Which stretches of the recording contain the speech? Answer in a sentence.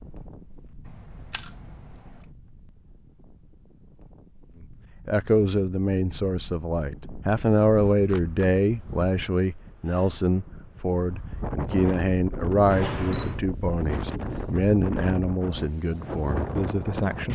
The speech can be heard from 5.0 to 17.3 s.